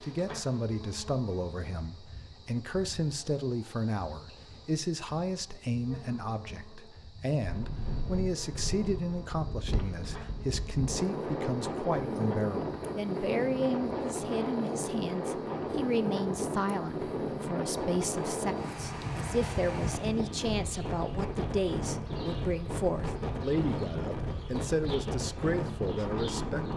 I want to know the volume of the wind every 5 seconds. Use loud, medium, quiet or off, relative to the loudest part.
off, medium, loud, loud, loud, loud.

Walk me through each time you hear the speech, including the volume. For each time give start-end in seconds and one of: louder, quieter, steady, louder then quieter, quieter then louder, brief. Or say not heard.
0.0-26.7 steady.